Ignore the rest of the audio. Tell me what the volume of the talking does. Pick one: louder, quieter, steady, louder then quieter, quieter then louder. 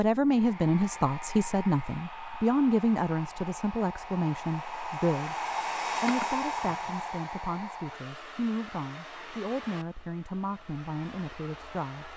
quieter.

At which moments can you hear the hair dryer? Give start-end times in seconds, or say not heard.
0.0-12.1.